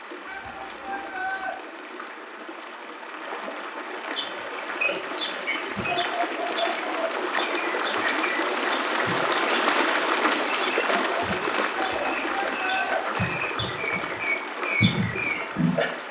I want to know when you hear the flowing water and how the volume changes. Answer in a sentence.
You can hear the flowing water from 0.0 to 16.0 s, getting louder then quieter.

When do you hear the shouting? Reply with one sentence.
You can hear the shouting from 0.2 to 1.6 s and from 11.7 to 13.0 s.